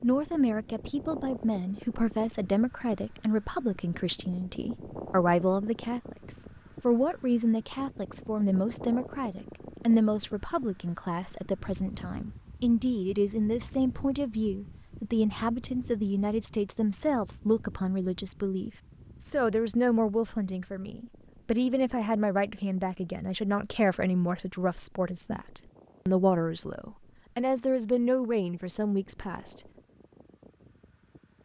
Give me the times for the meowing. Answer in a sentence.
The meowing can't be heard in this clip.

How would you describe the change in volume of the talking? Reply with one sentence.
The volume of the talking stays about the same.